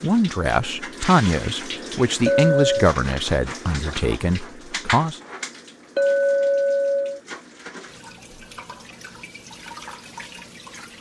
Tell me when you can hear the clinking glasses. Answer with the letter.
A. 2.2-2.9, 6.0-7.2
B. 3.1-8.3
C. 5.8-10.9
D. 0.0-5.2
A.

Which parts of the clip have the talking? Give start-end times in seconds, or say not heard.
0.0-5.2.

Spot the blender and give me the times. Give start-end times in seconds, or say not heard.
not heard.